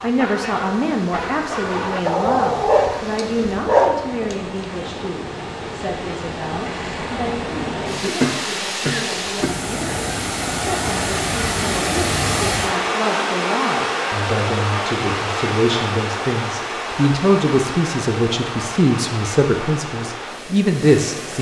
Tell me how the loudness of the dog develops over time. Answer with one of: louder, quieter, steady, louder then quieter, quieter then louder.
louder.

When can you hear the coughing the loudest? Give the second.
8 s.